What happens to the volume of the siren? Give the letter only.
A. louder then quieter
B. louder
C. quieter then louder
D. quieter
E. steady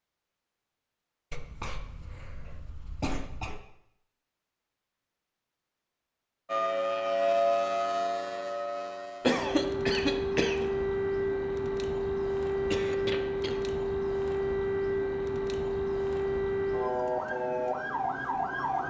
E.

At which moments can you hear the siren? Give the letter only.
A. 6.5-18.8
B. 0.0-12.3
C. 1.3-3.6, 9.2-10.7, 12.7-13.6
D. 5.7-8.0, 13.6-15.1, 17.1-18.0
A.